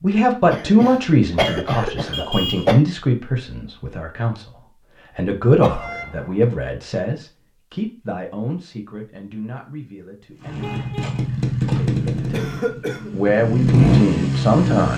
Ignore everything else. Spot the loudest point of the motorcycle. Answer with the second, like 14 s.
14 s.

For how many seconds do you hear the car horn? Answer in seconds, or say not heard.
3 s.